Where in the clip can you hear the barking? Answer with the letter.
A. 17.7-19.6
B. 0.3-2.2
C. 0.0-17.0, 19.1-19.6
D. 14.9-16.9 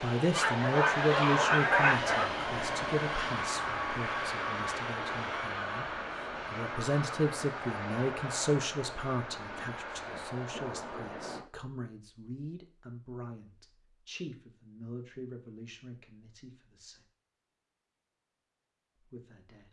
B.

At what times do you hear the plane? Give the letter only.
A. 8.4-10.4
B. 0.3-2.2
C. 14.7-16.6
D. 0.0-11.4
D.